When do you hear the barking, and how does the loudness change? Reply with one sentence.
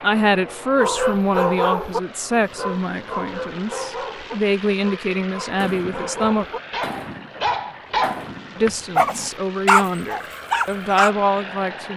The barking can be heard from 0.8 to 11.1 s, getting quieter then louder.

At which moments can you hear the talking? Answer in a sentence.
You can hear the talking from 0.0 to 6.5 s and from 8.6 to 11.9 s.